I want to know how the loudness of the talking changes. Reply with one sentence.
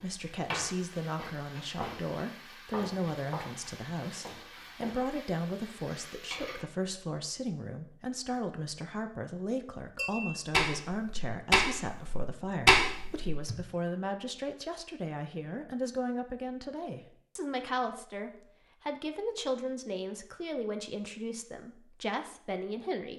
The volume of the talking stays about the same.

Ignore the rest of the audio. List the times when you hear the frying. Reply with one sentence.
The frying can be heard from 0.0 to 6.7 s.